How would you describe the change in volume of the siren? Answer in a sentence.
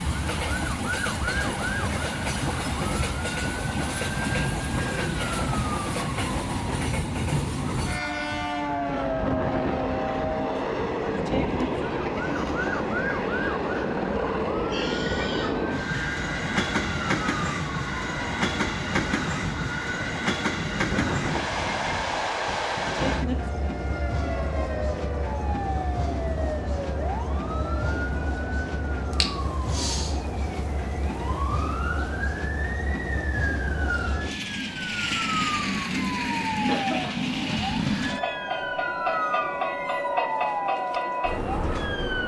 The loudness of the siren stays about the same.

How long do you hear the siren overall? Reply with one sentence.
You can hear the siren for 42 seconds altogether.